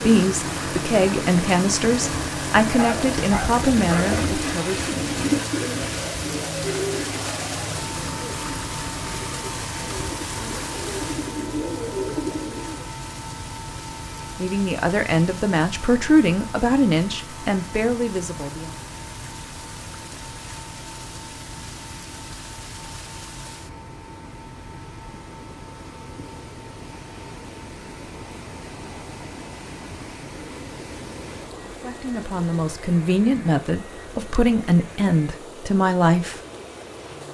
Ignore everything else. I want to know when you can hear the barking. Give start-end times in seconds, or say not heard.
2.8-4.1.